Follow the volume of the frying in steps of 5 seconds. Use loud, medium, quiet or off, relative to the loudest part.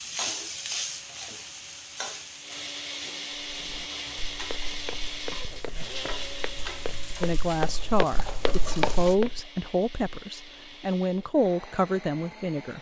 loud, loud, off.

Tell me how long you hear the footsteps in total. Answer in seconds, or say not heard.
6 s.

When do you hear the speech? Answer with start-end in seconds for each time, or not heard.
7.2-12.7.